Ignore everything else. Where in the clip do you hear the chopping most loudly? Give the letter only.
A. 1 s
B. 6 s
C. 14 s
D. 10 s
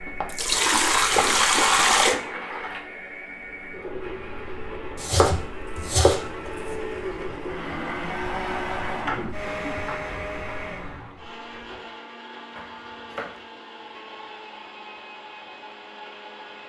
B.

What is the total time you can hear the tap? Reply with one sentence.
The tap can be heard for 12 seconds in total.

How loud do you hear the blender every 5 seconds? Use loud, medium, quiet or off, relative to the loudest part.
medium, loud, medium, medium.